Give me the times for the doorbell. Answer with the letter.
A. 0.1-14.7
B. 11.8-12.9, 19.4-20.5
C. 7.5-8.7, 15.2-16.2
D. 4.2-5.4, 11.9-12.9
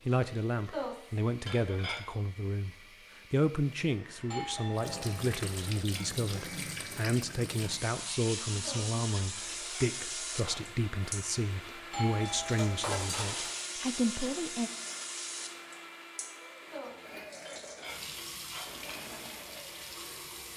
D.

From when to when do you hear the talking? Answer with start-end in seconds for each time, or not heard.
0.1-14.7.